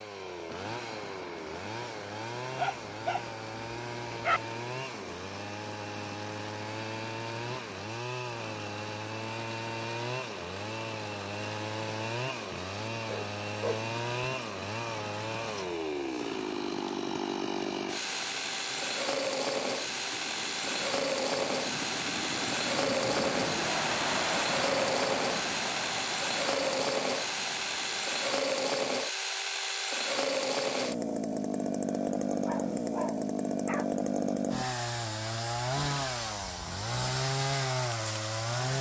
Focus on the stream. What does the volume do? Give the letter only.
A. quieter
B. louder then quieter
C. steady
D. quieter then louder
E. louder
E.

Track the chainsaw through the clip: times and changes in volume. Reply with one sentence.
The chainsaw can be heard from 0.0 to 38.7 s, getting louder.